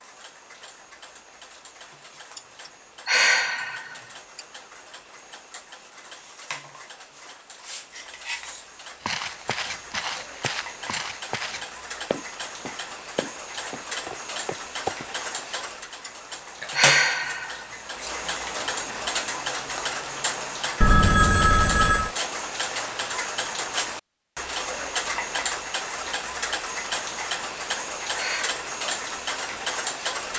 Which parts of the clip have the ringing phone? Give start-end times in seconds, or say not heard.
20.8-22.1.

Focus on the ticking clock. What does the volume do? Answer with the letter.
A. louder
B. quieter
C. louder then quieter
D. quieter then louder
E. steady
A.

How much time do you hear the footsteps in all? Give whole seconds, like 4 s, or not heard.
6 s.